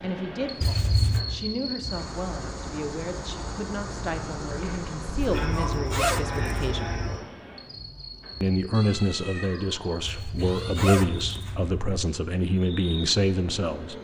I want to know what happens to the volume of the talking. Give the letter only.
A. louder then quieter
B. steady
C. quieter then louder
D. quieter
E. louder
E.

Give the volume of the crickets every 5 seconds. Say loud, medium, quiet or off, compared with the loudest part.
loud, loud, medium.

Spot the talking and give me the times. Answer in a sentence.
You can hear the talking from 0.0 to 7.0 s and from 8.4 to 13.9 s.